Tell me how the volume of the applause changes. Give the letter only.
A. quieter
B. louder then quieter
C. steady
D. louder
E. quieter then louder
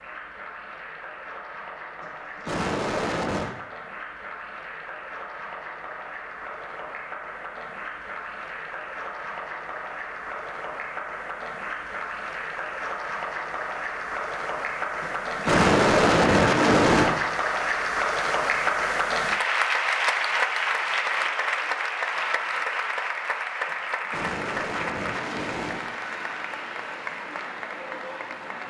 B.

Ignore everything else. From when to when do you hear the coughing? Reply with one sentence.
The coughing can be heard from 2.0 to 3.5 s, from 15.0 to 17.1 s and from 23.6 to 25.9 s.